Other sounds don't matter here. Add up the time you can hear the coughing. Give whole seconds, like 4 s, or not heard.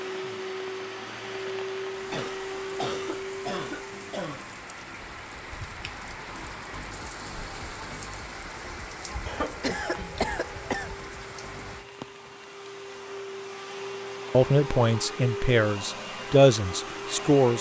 4 s.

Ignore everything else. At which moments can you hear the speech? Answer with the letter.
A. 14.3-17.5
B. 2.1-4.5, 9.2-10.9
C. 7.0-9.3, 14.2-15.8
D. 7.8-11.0
A.